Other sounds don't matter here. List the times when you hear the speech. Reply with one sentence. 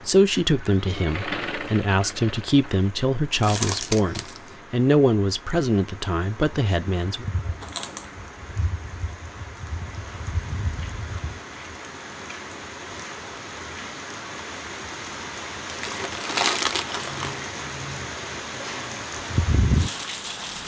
You can hear the speech from 0.1 to 7.2 s.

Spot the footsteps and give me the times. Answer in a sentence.
You can't hear the footsteps here.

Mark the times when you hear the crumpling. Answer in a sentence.
The crumpling can be heard from 3.3 to 4.4 s, from 7.6 to 8.1 s and from 15.4 to 17.4 s.